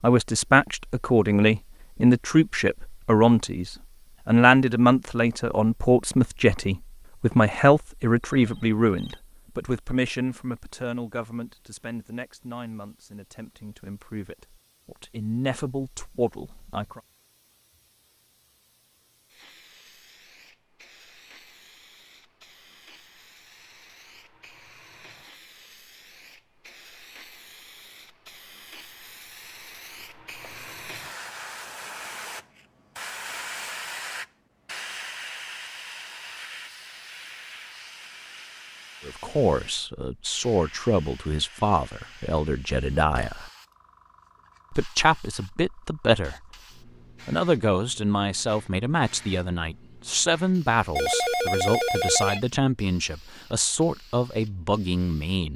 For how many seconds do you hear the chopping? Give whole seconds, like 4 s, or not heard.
not heard.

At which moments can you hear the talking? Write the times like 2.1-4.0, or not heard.
0.0-17.0, 39.0-43.5, 44.7-46.5, 47.2-55.5.